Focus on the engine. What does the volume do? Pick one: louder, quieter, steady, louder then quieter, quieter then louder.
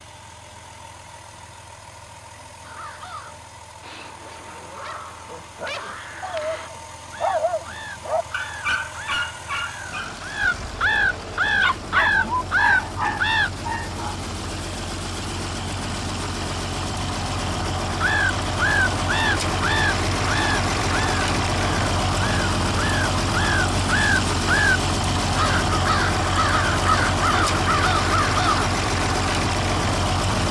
louder.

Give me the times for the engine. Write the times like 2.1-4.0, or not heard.
0.0-30.4.